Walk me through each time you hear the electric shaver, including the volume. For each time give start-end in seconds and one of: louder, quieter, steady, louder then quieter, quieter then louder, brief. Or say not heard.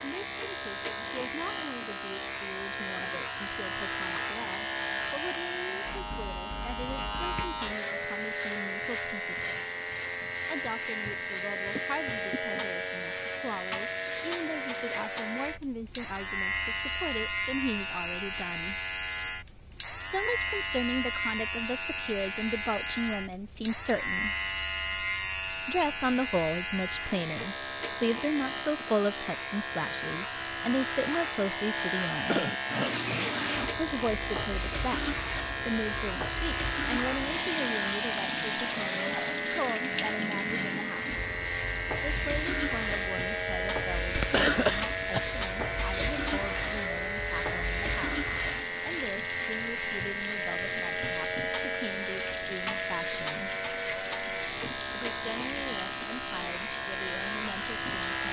0.0-58.2 steady.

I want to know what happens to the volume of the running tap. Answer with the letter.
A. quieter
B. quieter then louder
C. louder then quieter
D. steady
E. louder
A.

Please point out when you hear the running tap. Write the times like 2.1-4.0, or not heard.
32.6-58.1.